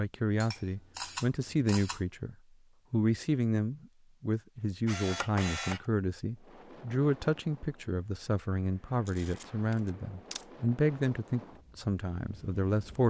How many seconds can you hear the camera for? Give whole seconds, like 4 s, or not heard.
4 s.